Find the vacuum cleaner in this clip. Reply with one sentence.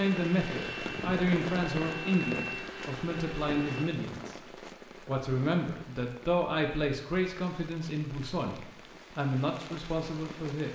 You can hear the vacuum cleaner from 0.0 to 3.9 s.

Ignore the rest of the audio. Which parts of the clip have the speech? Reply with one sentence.
The speech can be heard from 0.0 to 4.3 s and from 5.0 to 10.7 s.